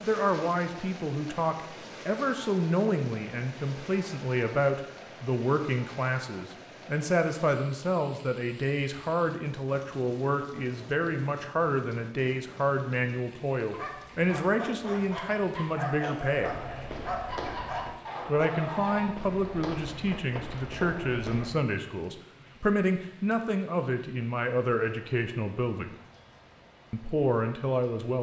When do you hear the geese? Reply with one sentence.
You can't hear the geese here.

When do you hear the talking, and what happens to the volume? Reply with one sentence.
You can hear the talking from 0.0 to 16.6 s, at a steady volume; from 18.2 to 25.9 s, at a steady volume; and briefly from 26.9 to 28.1 s.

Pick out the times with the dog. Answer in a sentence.
The dog can be heard from 13.7 to 19.1 s.